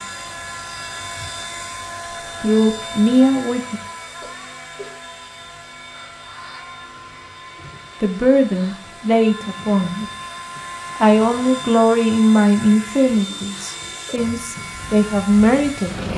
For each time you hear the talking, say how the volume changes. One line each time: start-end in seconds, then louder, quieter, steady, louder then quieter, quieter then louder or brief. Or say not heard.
2.4-3.8 brief
8.0-10.1 brief
11.0-16.1 quieter then louder.